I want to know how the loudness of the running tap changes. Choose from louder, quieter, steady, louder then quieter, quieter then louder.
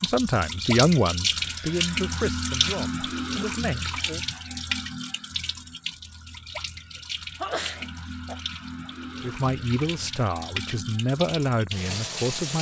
quieter.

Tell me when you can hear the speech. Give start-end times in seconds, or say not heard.
0.0-4.2, 9.2-12.5.